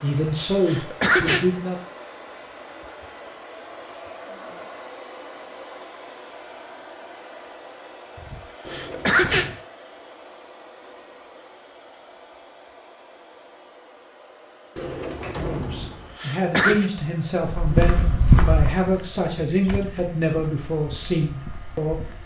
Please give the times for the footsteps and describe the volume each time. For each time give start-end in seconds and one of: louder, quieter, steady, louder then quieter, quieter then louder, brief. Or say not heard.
17.4-22.2 quieter.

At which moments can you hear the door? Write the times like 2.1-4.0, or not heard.
8.6-9.6, 14.8-16.2.